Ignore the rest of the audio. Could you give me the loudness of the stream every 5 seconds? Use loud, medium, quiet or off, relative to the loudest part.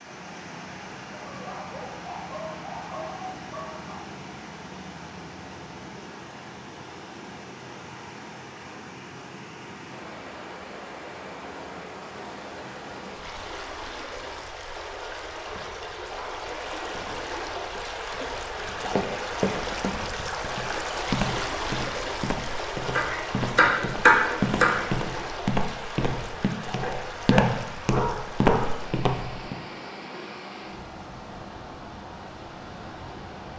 medium, medium, medium, loud, loud, medium, medium.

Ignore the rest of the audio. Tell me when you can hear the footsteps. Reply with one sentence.
You can hear the footsteps from 18.6 to 29.6 s.